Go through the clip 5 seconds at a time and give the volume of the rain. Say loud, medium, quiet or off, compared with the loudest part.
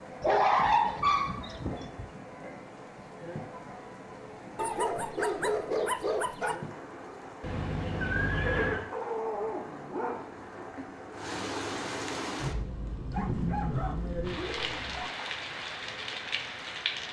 medium, medium, loud, loud.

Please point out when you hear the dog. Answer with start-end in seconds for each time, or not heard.
0.2-2.0, 4.5-6.5, 8.9-10.8, 13.1-15.1.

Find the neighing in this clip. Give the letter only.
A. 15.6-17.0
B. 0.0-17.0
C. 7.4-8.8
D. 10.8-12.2
C.